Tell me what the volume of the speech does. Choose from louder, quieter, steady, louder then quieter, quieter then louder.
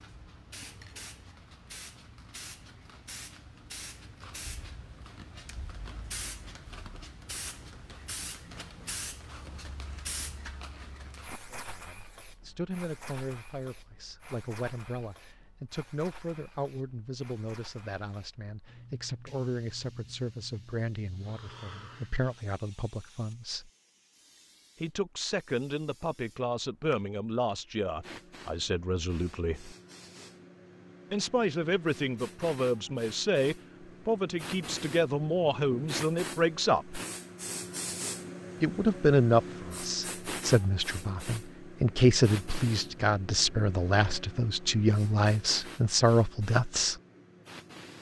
louder.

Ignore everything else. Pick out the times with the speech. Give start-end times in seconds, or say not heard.
11.5-23.7, 24.8-29.8, 31.1-37.0, 38.6-47.0.